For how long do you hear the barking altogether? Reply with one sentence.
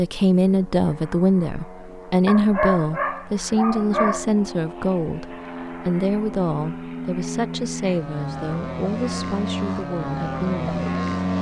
The barking can be heard for 2 seconds in total.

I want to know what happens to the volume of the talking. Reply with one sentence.
The volume of the talking goes down.